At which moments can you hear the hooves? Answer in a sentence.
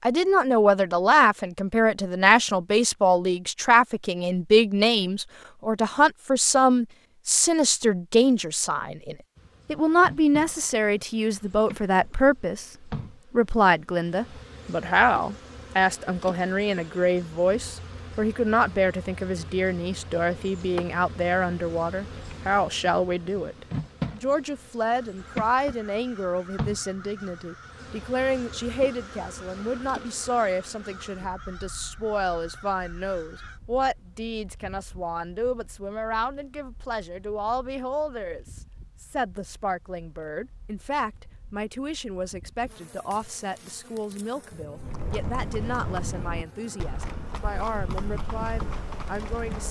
The hooves can be heard from 44.8 to 49.6 s.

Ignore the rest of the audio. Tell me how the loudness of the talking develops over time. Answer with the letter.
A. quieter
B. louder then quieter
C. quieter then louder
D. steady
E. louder
A.